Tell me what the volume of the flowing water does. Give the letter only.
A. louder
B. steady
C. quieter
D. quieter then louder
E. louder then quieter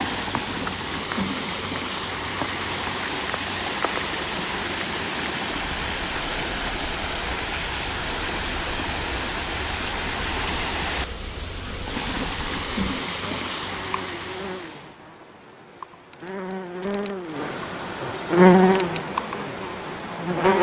B.